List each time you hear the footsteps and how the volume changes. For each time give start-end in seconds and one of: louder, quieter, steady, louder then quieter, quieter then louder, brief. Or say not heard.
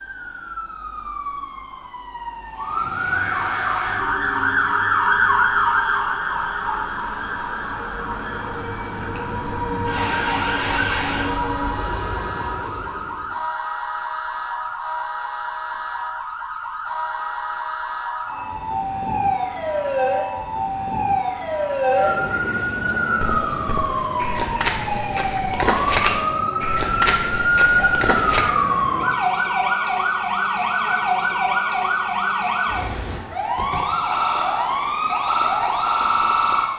23.2-28.4 louder then quieter.